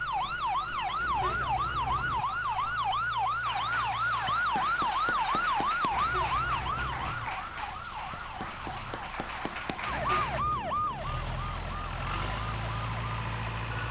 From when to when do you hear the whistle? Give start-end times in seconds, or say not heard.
not heard.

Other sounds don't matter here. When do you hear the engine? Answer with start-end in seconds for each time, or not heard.
0.0-13.8.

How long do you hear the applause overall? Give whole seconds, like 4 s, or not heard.
7 s.